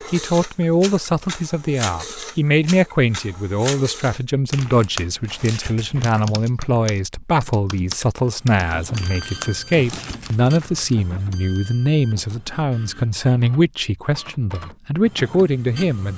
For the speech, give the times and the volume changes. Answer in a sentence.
You can hear the speech from 0.1 to 16.1 s, at a steady volume.